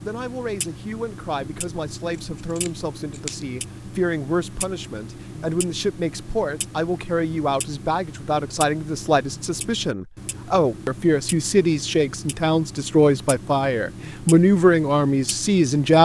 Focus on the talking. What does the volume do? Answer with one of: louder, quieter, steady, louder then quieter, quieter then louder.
louder.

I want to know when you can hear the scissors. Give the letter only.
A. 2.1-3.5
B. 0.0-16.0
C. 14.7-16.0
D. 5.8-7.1
A.